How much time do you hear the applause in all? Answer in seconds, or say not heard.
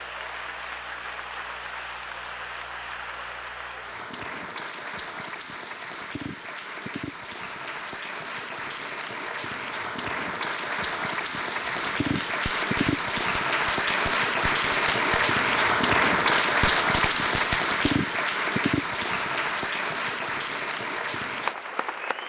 22 s.